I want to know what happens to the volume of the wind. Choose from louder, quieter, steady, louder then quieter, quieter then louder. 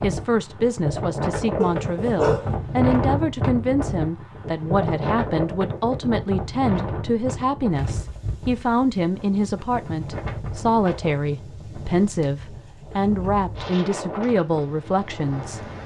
quieter.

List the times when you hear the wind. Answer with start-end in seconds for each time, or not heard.
0.0-15.8.